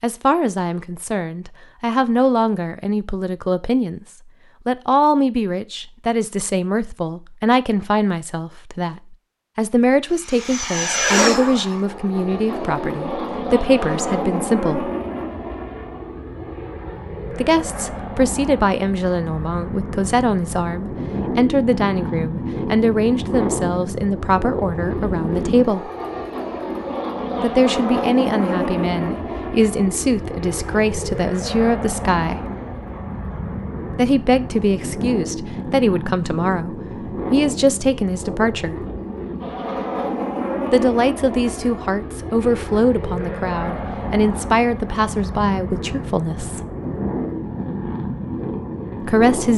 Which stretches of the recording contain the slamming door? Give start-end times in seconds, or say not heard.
not heard.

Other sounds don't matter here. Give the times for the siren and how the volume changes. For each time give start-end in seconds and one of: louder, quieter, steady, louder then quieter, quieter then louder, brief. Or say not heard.
not heard.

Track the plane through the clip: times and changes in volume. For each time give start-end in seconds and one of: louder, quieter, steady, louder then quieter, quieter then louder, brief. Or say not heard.
10.1-49.5 steady.